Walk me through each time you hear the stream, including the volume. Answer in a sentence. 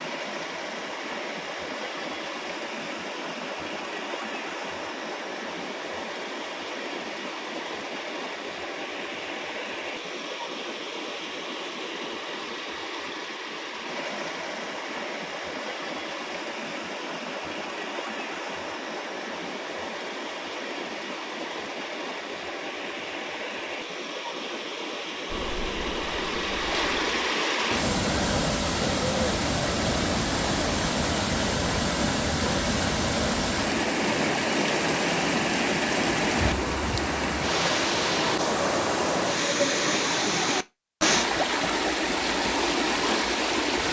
The stream can be heard from 0.0 to 43.8 s, getting louder.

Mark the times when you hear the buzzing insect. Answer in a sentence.
You can hear the buzzing insect from 25.3 to 27.4 s.